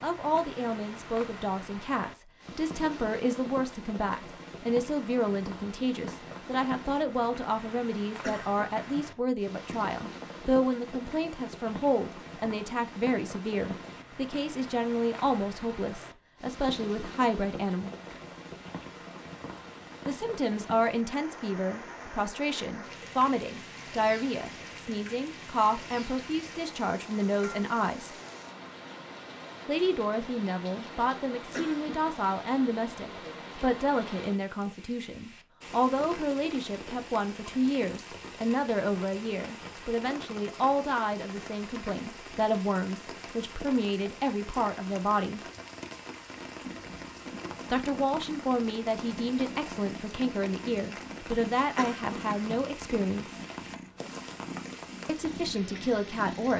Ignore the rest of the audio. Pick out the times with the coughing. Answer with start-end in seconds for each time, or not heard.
8.2-9.2, 31.5-32.1, 51.8-52.6.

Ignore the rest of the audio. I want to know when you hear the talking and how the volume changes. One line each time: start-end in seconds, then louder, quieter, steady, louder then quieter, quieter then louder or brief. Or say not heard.
0.0-17.9 steady
20.1-28.1 steady
29.6-45.4 steady
47.7-53.4 steady
55.0-56.5 brief.